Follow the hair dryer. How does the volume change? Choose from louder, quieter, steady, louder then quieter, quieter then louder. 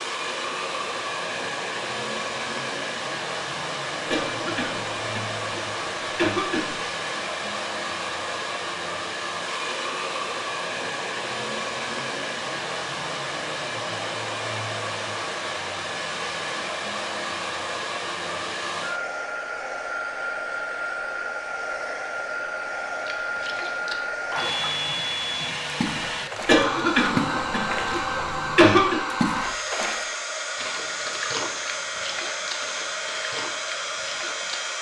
steady.